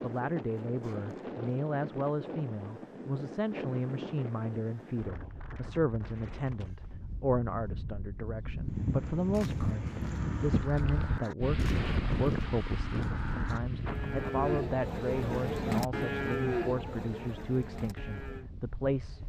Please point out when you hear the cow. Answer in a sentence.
You can hear the cow from 9.3 to 18.4 s.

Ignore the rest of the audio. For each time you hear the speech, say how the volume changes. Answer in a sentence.
You can hear the speech from 0.0 to 19.2 s, at a steady volume.